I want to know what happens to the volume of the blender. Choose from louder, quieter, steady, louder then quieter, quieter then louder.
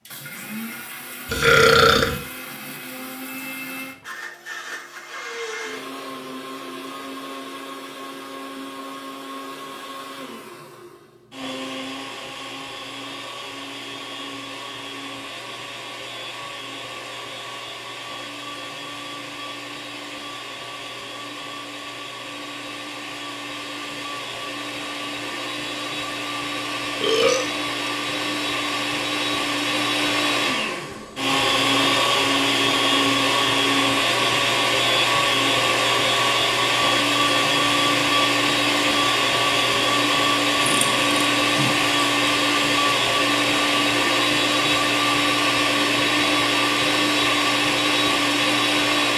louder.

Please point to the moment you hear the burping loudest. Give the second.
2 s.